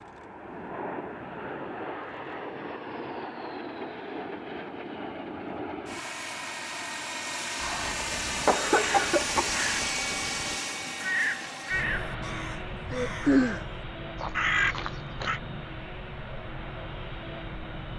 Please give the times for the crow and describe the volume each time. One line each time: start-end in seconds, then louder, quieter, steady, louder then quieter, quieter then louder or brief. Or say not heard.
7.8-15.4 louder.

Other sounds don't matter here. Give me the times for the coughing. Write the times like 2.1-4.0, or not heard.
7.6-9.6.